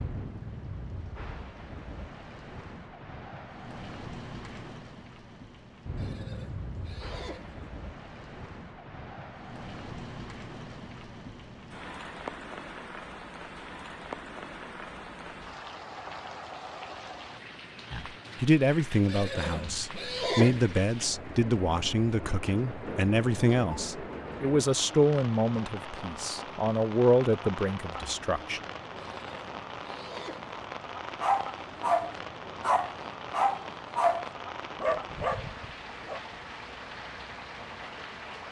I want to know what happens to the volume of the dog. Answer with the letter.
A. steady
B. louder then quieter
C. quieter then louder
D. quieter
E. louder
D.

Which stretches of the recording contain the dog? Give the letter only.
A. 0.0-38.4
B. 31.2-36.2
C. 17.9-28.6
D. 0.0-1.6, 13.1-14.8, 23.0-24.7
B.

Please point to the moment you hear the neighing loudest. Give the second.
20 s.